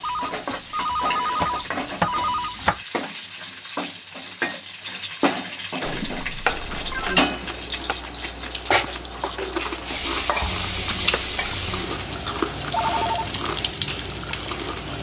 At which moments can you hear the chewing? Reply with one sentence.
You can hear the chewing from 5.8 to 14.9 s.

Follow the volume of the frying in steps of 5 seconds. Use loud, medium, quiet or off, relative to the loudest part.
medium, loud, loud.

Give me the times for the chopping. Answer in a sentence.
The chopping can be heard from 0.5 to 2.8 s, from 6.5 to 8.0 s and from 10.4 to 11.9 s.